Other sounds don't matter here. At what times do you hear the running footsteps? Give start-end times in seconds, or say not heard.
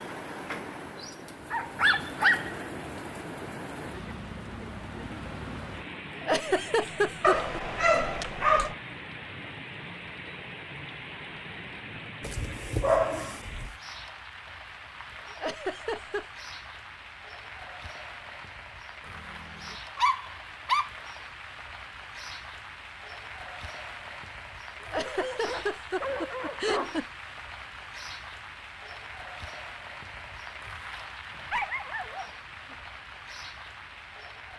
not heard.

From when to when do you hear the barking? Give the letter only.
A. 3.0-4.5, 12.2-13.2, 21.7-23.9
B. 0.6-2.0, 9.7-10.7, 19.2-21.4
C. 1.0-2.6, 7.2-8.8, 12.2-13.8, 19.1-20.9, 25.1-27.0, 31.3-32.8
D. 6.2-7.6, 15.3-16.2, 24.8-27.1
C.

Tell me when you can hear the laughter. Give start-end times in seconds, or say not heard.
6.2-7.6, 15.3-16.2, 24.8-27.1.